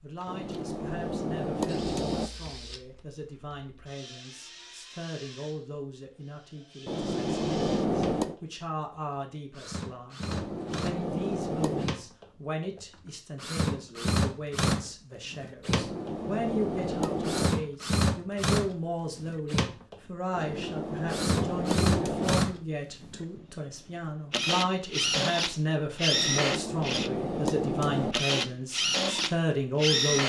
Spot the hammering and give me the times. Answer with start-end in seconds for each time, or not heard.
0.2-2.3, 6.8-8.4, 10.2-11.9, 15.7-17.6, 20.4-22.4, 26.1-28.1.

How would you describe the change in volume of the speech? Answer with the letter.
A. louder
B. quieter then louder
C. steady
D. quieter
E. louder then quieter
A.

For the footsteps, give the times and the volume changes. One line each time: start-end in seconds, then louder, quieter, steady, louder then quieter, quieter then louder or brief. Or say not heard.
not heard.